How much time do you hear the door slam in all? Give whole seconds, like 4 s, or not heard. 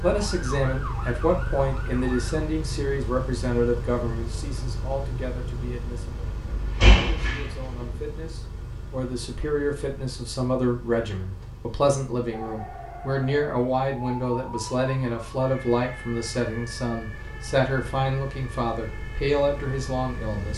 2 s.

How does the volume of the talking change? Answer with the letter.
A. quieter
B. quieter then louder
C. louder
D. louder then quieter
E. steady
B.